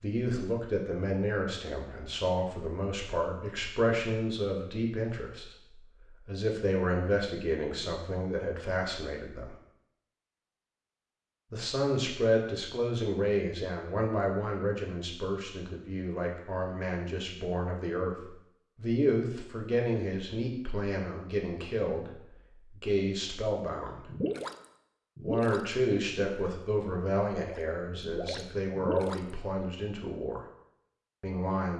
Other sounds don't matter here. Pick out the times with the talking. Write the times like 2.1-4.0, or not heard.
0.0-9.5, 11.5-24.1, 25.2-30.4, 31.2-31.7.